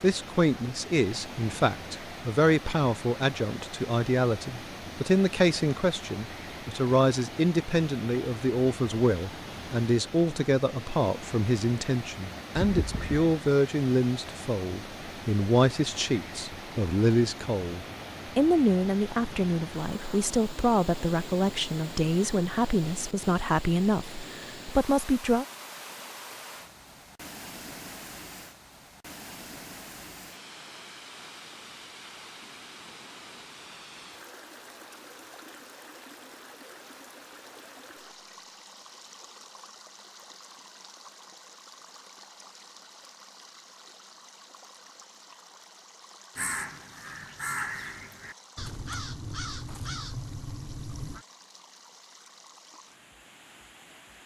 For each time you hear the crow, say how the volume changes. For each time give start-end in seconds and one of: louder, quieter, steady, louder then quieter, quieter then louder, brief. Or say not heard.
46.4-51.2 steady.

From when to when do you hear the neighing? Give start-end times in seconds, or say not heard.
12.6-13.4.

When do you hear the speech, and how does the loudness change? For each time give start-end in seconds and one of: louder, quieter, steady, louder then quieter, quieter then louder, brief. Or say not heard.
0.0-25.4 steady.